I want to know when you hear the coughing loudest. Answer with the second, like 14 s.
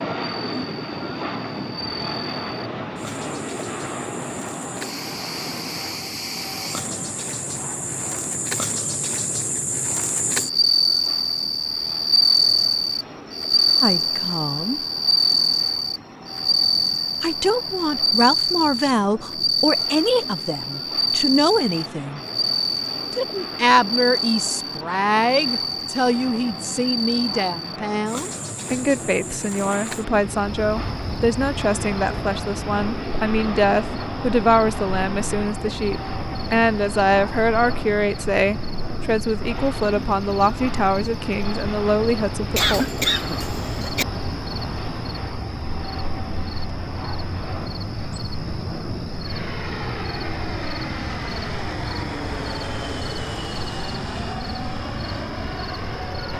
43 s.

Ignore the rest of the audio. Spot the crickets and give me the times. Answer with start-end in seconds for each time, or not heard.
0.0-56.3.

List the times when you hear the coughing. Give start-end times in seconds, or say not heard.
42.5-44.0.